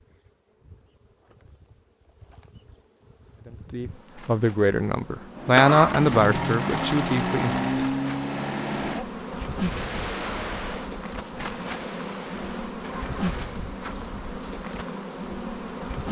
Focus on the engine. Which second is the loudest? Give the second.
6 s.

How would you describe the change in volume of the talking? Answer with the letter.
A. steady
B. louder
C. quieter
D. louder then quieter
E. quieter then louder
D.